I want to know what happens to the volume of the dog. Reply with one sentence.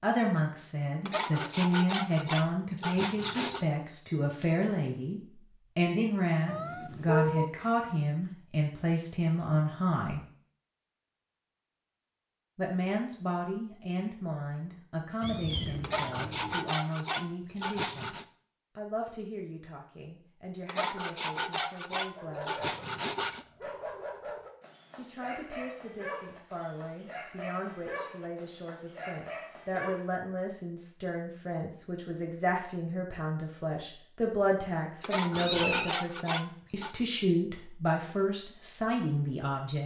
The loudness of the dog stays about the same.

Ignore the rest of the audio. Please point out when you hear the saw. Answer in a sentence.
The saw can be heard from 1.1 to 3.6 s, from 15.8 to 18.2 s, from 20.6 to 23.4 s and from 35.0 to 37.0 s.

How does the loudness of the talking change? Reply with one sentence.
The loudness of the talking goes down, then up.